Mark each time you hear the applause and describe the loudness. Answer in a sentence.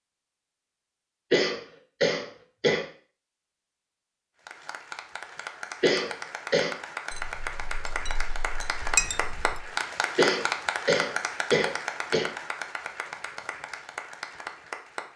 You can hear the applause from 4.4 to 15.1 s, getting louder then quieter.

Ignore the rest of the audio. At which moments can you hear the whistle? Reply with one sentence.
You can't hear the whistle here.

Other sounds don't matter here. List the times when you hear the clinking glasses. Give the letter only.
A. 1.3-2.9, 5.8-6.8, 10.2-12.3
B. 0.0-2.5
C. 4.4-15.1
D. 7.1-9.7
D.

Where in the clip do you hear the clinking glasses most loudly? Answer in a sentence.
The loudest moment of the clinking glasses is at 9 seconds.